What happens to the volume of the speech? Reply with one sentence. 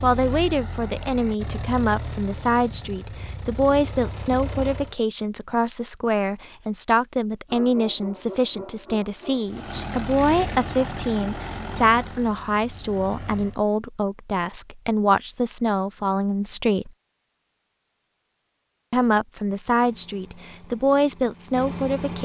The volume of the speech stays about the same.